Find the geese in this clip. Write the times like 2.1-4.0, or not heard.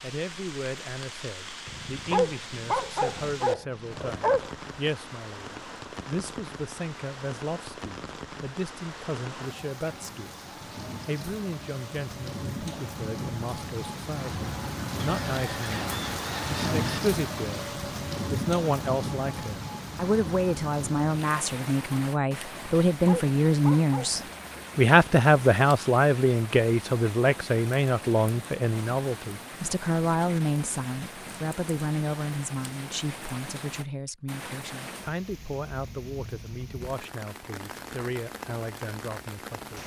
14.9-17.0.